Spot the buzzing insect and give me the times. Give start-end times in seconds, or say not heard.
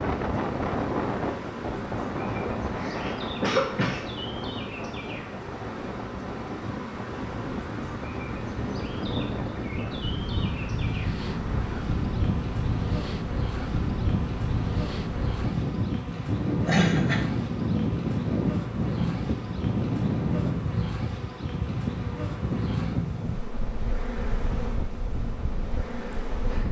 0.0-26.6.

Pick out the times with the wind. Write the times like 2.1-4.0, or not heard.
0.0-26.6.